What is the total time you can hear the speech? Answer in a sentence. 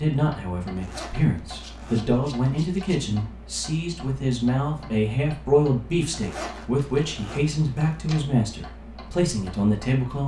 The speech can be heard for 10 seconds in total.